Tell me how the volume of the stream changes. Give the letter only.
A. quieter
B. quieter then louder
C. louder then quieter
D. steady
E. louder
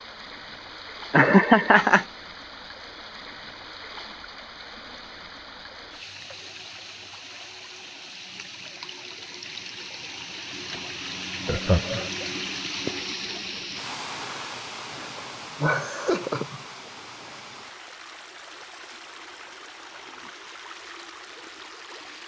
C.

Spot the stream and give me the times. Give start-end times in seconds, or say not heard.
0.0-22.2.